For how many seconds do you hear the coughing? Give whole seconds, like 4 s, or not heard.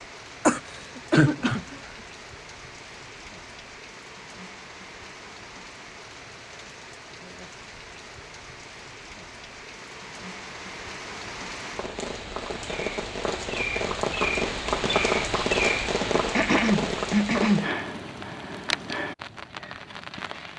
3 s.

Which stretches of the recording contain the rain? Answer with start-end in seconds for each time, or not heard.
0.0-20.5.